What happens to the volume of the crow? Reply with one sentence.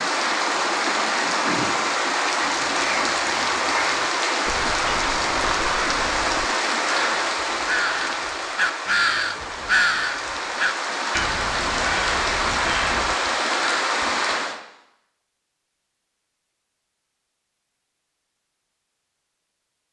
The volume of the crow goes up, then down.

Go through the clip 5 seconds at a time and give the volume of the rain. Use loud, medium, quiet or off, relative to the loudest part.
loud, loud, loud, off.